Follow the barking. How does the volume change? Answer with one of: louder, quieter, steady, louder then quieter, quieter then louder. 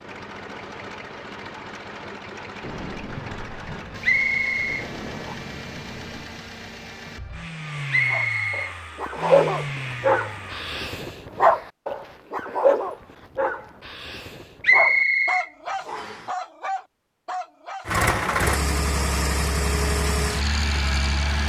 quieter.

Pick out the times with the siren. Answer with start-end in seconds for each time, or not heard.
not heard.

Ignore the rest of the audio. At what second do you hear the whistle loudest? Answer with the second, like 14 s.
15 s.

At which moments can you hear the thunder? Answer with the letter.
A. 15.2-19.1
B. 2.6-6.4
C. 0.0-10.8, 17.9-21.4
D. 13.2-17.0
B.